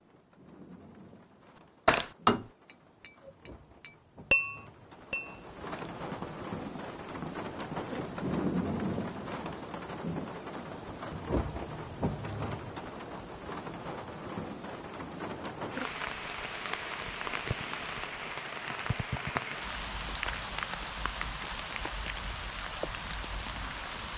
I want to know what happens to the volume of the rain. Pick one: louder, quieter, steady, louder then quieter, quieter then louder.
louder.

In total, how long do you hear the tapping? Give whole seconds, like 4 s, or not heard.
7 s.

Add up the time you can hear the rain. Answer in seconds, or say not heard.
24 s.